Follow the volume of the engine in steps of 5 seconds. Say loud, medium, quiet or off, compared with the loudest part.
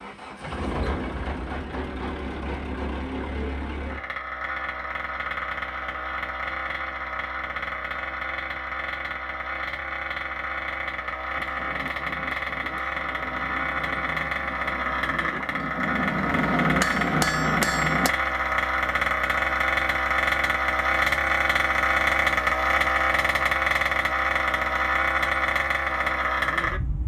medium, medium, medium, loud, loud, loud.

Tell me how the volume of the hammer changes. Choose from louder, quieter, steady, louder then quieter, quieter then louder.
louder.